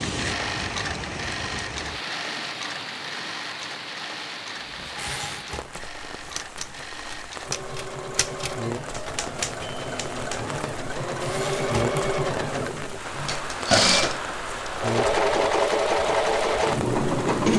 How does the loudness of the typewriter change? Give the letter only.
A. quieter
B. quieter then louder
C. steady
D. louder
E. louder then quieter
C.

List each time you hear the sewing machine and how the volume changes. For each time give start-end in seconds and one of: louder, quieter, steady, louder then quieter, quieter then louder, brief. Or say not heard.
0.0-17.5 quieter then louder.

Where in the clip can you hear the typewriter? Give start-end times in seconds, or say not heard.
4.8-12.2.